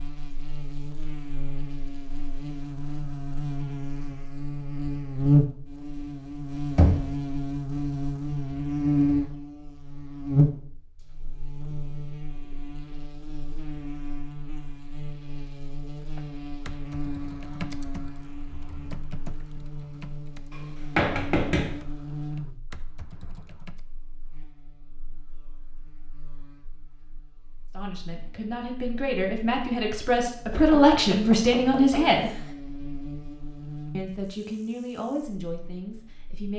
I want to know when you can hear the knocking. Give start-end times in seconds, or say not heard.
6.8-7.2, 20.5-21.8, 30.5-32.5.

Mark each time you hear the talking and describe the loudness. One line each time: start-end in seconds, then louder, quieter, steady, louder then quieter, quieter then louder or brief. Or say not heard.
27.7-32.4 louder
33.9-36.5 brief.